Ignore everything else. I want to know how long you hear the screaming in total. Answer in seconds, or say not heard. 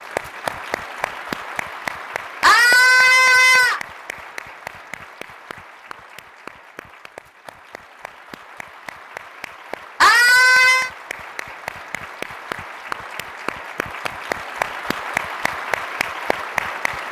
2 s.